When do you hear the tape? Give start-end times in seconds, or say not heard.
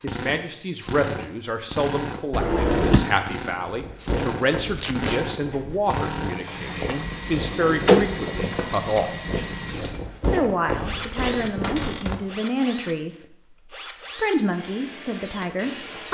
4.8-5.2, 8.7-9.1.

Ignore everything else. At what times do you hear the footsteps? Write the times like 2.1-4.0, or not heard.
3.5-12.2.